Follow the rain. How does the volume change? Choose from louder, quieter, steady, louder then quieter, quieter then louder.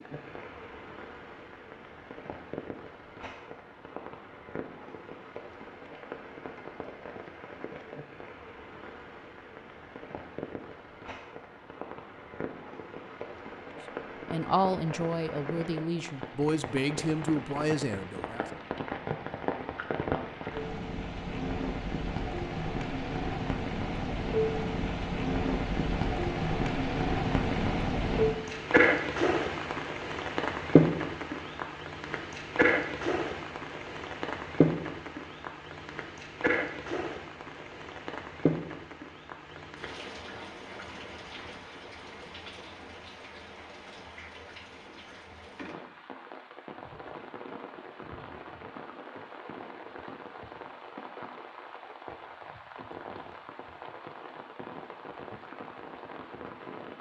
louder then quieter.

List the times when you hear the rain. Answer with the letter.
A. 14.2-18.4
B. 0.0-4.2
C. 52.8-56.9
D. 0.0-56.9
D.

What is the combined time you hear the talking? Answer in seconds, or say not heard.
4 s.